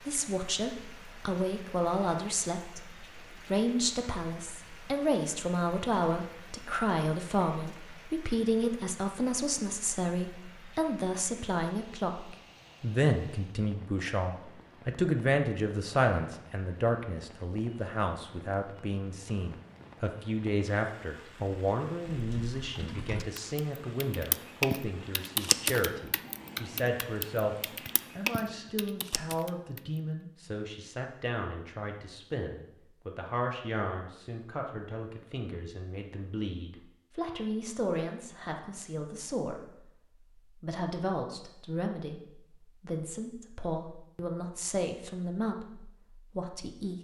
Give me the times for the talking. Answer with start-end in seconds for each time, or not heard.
0.1-27.6, 28.1-39.7, 40.5-47.0.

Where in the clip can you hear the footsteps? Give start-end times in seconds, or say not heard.
not heard.